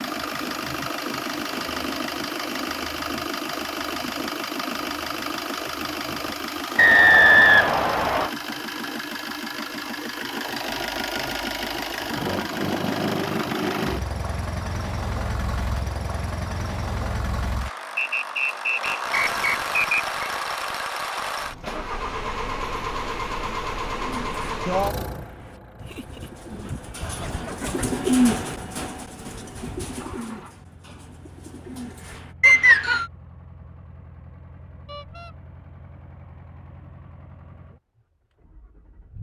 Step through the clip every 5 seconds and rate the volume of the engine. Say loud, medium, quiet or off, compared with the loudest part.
loud, loud, loud, loud, loud, quiet, quiet, quiet.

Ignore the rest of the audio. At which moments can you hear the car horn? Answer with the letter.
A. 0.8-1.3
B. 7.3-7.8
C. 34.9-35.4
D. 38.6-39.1
C.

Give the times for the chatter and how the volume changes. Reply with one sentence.
You can't hear the chatter here.